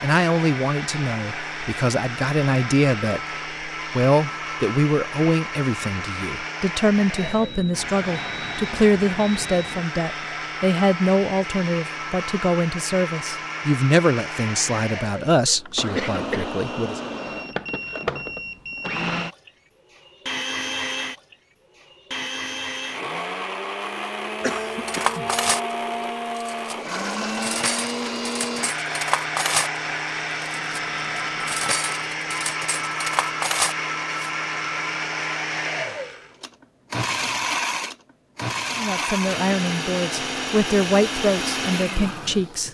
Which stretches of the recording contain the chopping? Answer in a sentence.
You can't hear the chopping here.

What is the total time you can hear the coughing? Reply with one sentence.
The coughing can be heard for 2 seconds in total.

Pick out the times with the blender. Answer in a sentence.
You can hear the blender from 0.0 to 42.6 s.